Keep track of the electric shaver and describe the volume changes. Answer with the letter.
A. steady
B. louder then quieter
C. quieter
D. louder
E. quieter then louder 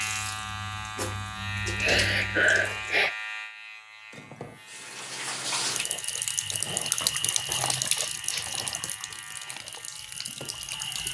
C.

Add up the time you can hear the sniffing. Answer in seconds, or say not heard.
2 s.